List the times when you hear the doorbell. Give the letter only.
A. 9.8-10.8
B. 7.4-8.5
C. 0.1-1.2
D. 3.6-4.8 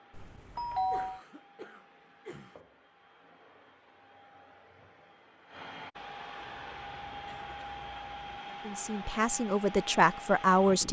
C.